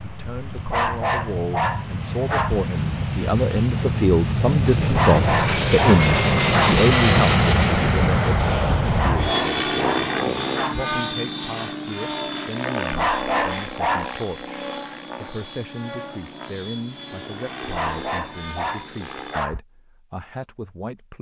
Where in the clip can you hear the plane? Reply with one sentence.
You can hear the plane from 0.0 to 19.4 s.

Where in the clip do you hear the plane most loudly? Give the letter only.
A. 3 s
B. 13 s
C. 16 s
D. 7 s
D.